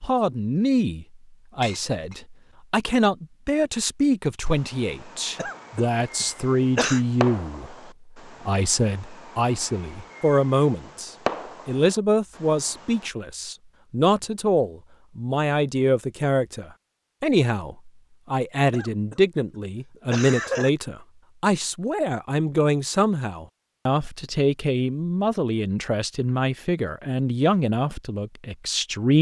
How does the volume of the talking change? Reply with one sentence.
The volume of the talking stays about the same.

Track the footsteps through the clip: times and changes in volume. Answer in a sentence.
The footsteps can't be heard in this clip.